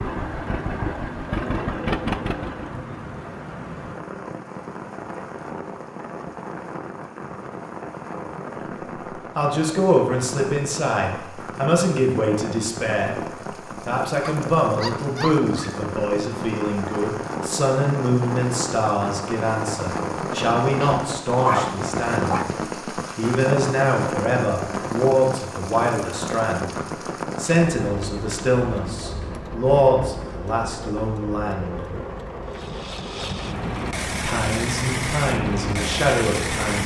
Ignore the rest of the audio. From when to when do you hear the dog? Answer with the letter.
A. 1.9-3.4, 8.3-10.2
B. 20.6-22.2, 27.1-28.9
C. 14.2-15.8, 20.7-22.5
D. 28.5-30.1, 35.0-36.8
C.